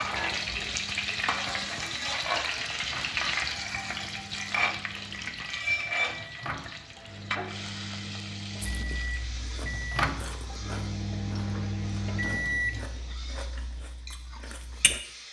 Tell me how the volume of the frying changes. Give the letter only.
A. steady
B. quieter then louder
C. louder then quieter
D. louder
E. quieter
E.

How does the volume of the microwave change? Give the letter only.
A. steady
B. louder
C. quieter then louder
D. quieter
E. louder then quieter
B.